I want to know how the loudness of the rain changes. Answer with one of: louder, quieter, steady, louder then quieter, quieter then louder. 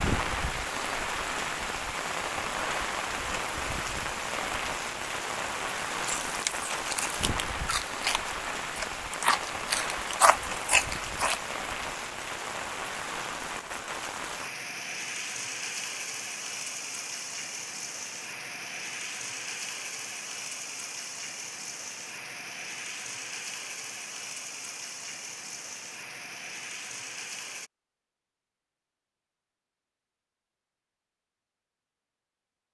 quieter.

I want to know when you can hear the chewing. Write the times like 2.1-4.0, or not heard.
6.0-11.4.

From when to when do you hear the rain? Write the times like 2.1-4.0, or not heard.
0.0-27.7.